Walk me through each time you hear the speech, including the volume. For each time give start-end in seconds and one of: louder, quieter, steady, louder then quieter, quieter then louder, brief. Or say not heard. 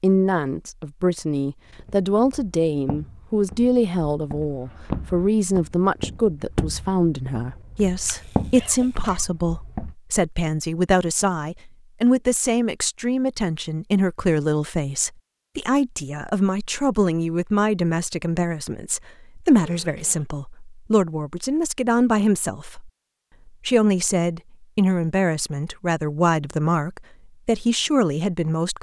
0.0-28.7 steady.